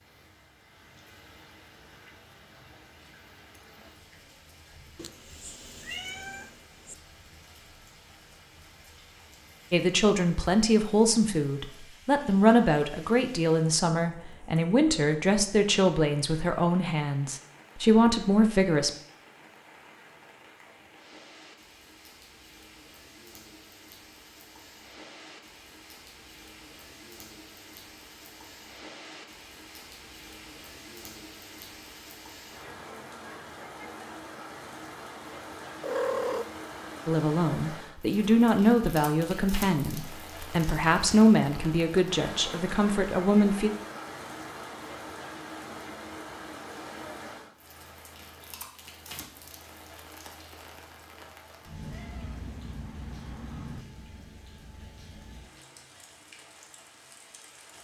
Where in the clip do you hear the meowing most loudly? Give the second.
36 s.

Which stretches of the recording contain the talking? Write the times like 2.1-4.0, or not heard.
9.7-18.9, 37.0-43.7.